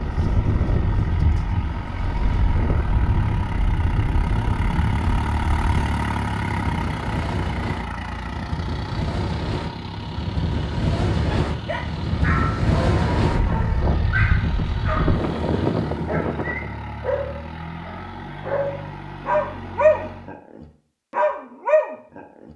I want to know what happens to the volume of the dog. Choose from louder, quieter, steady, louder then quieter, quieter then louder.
louder.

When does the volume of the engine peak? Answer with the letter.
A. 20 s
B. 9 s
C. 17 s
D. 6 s
D.